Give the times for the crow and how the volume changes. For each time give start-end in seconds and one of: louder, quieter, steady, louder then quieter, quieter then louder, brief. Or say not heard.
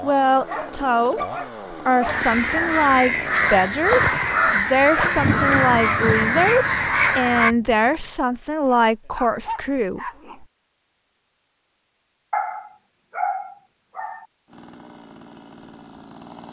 2.0-7.5 steady.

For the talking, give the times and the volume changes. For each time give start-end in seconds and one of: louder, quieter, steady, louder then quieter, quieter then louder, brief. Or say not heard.
0.0-10.1 steady.